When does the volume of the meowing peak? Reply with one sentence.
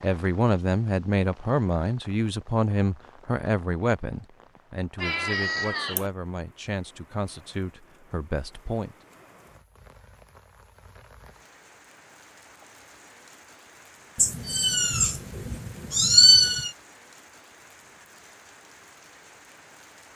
The loudest moment of the meowing is at 16 seconds.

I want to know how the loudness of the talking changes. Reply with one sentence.
The loudness of the talking goes down.